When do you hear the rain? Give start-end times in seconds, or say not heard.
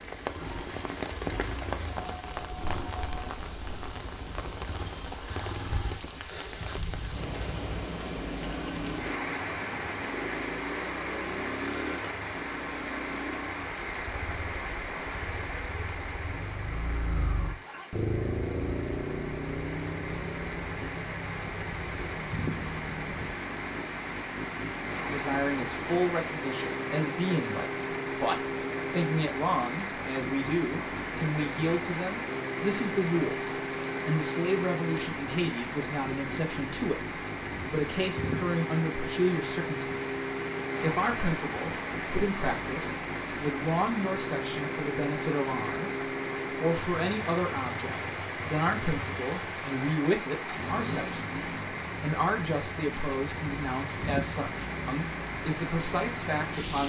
0.0-56.8.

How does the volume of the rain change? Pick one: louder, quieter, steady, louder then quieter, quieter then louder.
steady.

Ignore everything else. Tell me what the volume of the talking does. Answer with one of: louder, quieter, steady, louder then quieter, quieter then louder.
steady.